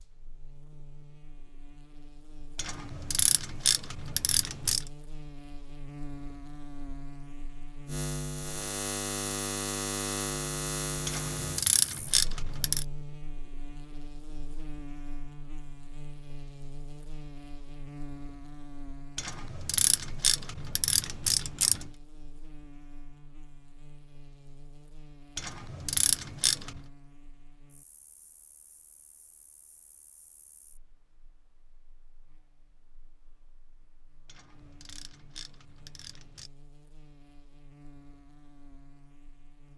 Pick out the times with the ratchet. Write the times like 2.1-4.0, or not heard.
2.5-4.8, 11.1-12.8, 19.1-21.9, 25.4-26.8, 34.2-36.5.